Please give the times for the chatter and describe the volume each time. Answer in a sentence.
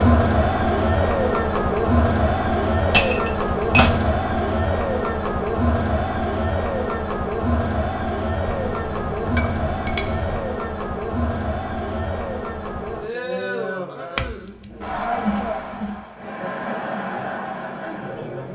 You can hear the chatter from 0.0 to 18.5 s, getting quieter.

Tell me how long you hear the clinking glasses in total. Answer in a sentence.
You can hear the clinking glasses for 4 seconds altogether.